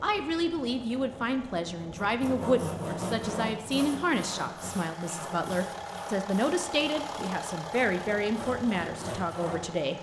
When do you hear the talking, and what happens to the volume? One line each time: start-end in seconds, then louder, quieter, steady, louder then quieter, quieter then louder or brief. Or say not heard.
0.0-9.9 steady.